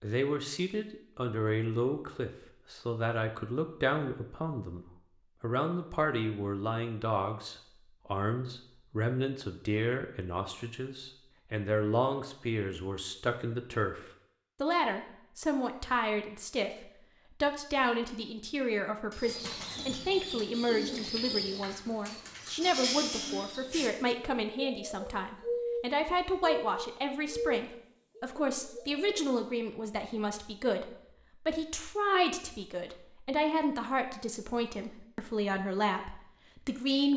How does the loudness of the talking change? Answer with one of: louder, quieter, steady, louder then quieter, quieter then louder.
steady.